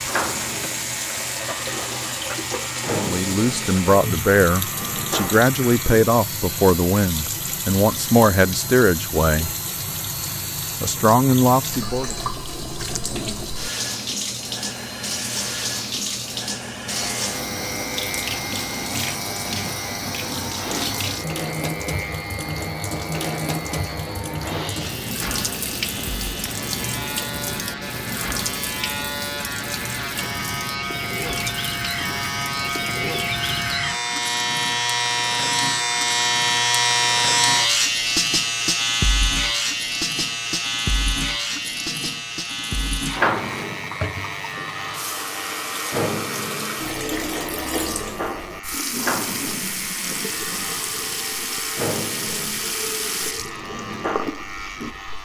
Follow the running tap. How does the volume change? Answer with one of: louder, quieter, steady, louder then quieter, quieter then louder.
quieter then louder.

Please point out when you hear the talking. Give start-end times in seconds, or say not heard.
3.0-9.5, 10.8-12.2.